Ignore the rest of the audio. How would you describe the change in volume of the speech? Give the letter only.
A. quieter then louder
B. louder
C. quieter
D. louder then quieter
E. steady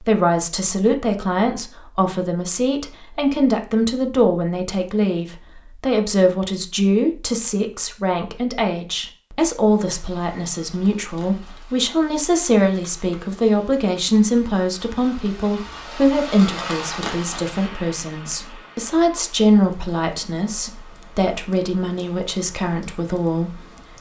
E.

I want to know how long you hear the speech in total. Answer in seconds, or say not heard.
24 s.